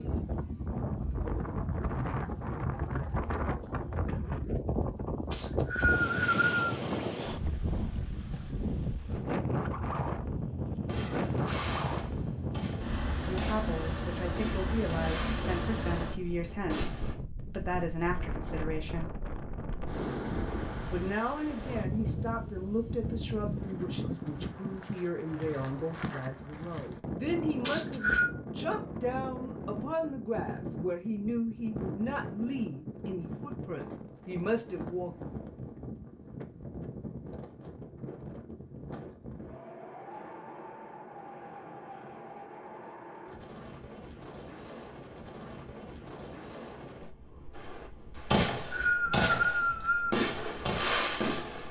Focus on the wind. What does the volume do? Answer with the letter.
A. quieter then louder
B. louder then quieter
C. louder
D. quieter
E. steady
D.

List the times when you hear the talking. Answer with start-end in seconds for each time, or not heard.
13.2-19.1, 20.9-35.1.